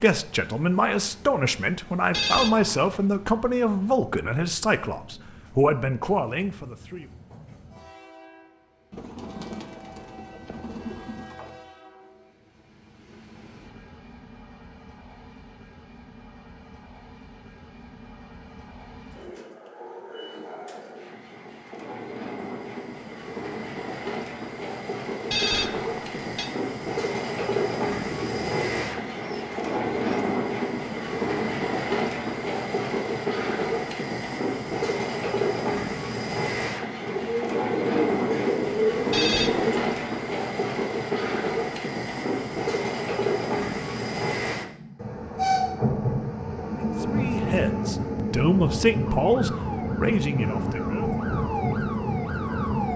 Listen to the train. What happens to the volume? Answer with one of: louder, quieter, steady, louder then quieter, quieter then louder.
louder.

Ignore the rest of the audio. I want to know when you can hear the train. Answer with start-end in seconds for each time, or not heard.
0.1-52.9.